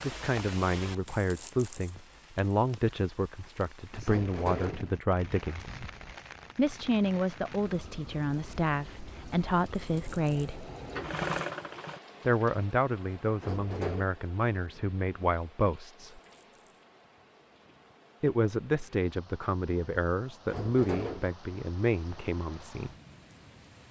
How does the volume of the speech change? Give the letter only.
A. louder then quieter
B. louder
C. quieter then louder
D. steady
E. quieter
D.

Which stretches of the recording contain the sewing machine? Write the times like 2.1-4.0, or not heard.
9.8-12.0.